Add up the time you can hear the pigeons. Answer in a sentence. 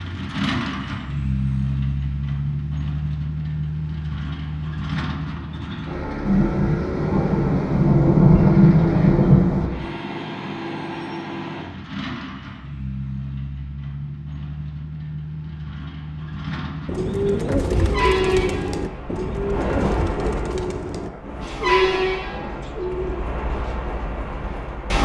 You can hear the pigeons for 7 seconds altogether.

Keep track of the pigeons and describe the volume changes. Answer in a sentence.
The volume of the pigeons goes down.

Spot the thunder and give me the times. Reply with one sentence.
You can hear the thunder from 6.2 to 9.7 s and from 19.4 to 22.7 s.